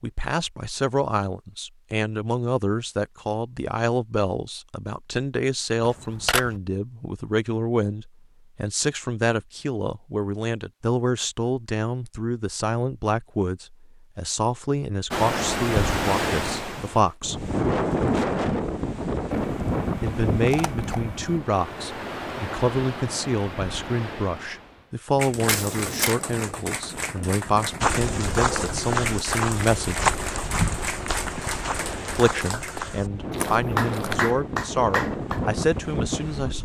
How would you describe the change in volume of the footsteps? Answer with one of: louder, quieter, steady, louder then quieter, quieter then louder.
quieter.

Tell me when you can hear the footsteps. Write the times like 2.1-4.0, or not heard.
27.8-34.4.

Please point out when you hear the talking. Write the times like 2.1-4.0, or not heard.
0.0-17.5, 20.0-30.1, 32.1-36.5.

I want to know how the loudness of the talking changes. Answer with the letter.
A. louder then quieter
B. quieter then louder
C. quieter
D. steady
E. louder
D.